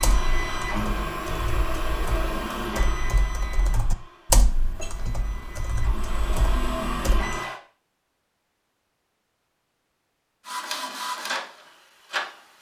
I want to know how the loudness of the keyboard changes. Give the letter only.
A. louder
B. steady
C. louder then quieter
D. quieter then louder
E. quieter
C.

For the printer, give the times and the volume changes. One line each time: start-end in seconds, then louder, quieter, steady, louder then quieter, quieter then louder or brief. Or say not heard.
0.0-7.6 quieter then louder
10.4-12.5 brief.